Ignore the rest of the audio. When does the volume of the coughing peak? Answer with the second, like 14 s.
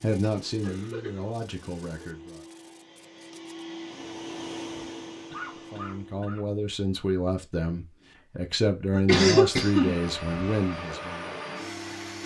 9 s.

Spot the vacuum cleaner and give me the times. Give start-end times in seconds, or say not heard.
0.0-6.3, 9.4-12.2.